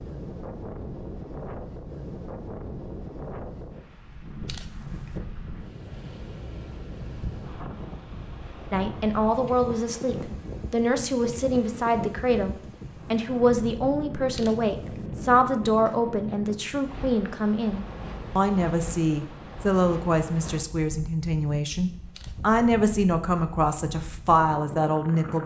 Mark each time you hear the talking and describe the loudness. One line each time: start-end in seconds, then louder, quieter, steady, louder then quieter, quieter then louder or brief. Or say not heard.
8.7-25.4 steady.